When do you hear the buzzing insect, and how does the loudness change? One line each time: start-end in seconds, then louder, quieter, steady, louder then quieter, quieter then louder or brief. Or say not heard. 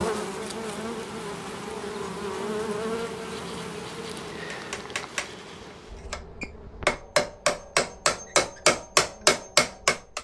0.0-10.1 quieter.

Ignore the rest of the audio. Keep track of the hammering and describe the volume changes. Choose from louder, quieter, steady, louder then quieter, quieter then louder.
louder.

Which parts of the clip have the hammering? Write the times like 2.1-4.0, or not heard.
4.5-10.1.